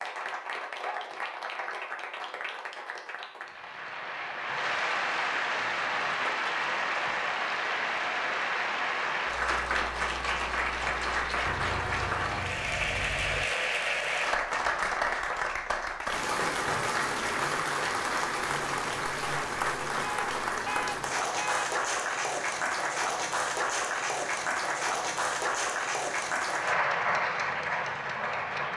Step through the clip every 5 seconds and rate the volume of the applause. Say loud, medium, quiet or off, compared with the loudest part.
medium, loud, loud, loud, loud, loud.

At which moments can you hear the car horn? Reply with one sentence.
You can hear the car horn from 5.6 to 6.7 s, from 11.4 to 13.4 s and from 20.0 to 21.8 s.